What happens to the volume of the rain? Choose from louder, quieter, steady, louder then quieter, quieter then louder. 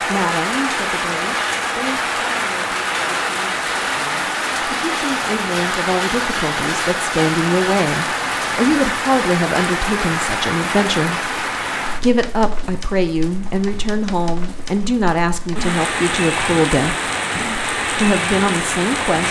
quieter then louder.